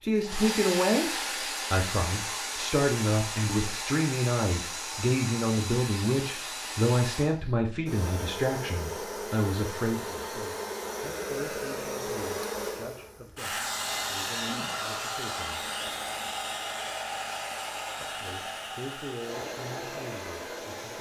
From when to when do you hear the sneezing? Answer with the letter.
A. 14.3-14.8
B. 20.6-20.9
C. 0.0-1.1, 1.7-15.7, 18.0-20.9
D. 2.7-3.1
A.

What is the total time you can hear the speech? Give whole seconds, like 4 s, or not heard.
18 s.